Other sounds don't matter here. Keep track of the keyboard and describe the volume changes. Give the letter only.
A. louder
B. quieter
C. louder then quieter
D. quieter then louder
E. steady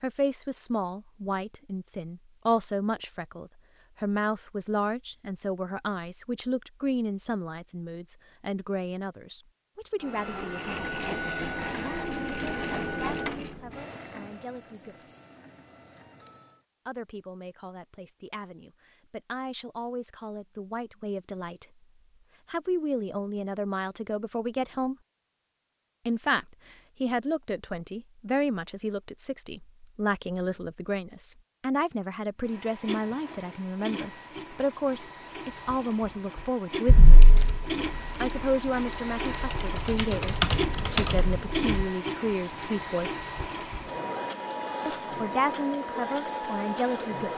D.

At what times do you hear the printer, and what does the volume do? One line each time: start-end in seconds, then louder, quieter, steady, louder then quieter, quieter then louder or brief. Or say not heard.
10.0-16.6 quieter
32.4-47.3 louder.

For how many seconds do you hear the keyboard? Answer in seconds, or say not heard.
5 s.